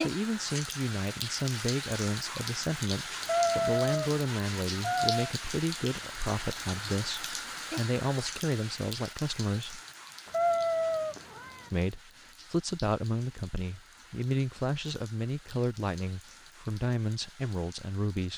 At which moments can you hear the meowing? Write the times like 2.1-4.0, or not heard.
3.2-5.3, 10.2-11.7.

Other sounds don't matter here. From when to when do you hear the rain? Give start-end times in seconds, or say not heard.
0.0-18.3.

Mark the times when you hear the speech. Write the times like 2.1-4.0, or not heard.
0.0-9.8, 11.7-18.3.